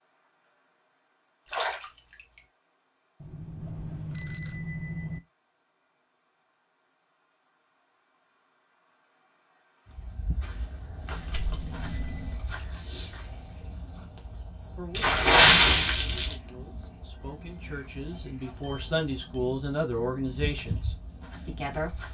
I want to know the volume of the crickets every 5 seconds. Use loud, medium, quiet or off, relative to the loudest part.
quiet, quiet, loud, loud, loud.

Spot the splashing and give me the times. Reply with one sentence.
You can hear the splashing from 1.4 to 2.4 s, from 11.1 to 12.6 s and from 14.9 to 16.4 s.